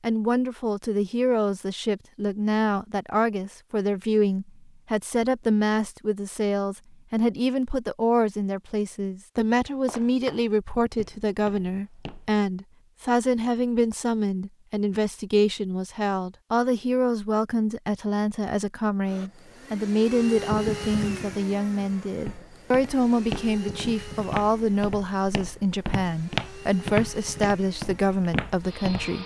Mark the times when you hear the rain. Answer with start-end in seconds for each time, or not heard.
not heard.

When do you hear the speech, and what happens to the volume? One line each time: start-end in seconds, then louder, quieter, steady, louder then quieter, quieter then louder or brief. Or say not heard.
0.0-29.2 steady.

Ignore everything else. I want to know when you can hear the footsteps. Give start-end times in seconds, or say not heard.
9.7-12.3, 22.2-29.2.